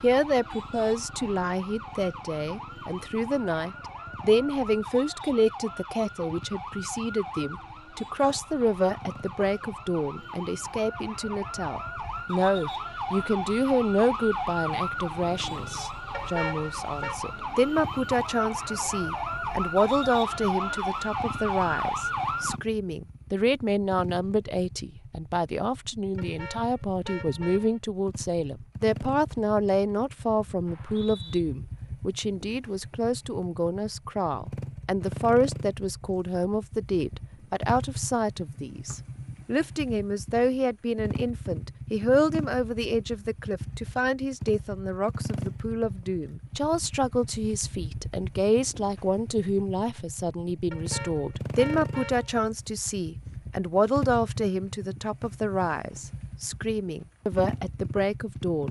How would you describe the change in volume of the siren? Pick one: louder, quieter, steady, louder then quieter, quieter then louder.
louder.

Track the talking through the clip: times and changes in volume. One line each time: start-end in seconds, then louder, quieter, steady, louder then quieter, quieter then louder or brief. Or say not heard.
0.0-58.6 steady.